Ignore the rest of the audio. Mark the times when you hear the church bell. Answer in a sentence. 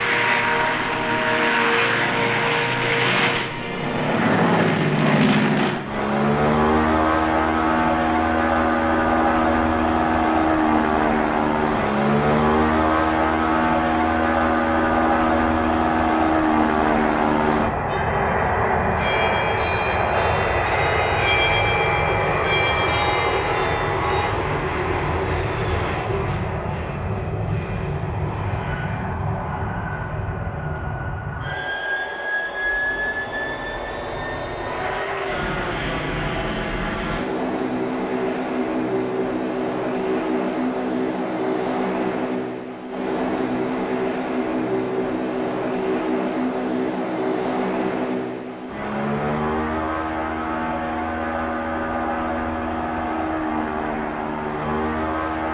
You can hear the church bell from 17.9 to 24.3 s.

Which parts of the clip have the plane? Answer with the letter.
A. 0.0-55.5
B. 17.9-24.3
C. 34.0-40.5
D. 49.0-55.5
A.